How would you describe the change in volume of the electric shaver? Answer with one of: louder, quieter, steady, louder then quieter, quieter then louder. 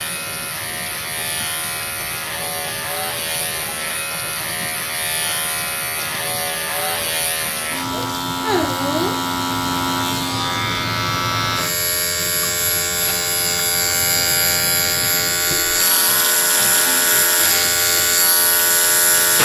louder.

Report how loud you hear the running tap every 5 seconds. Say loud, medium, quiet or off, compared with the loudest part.
medium, medium, medium, loud.